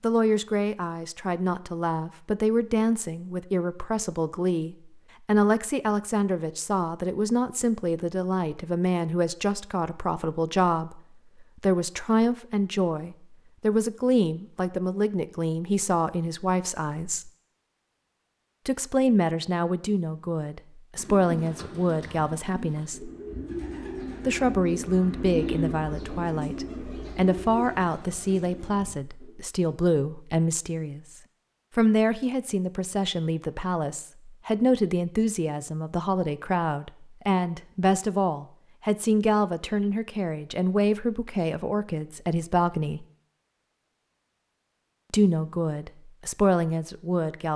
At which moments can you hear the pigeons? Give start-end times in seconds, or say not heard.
20.9-29.4.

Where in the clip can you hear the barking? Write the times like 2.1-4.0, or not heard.
not heard.